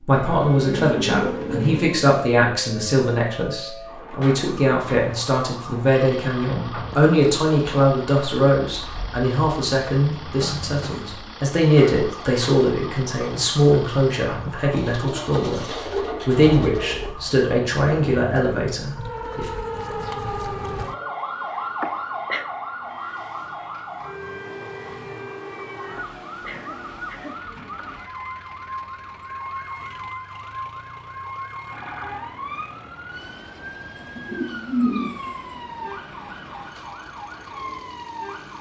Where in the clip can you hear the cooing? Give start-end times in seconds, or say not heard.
0.1-1.9, 14.7-17.1, 34.0-35.6.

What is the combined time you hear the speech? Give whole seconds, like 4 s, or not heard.
19 s.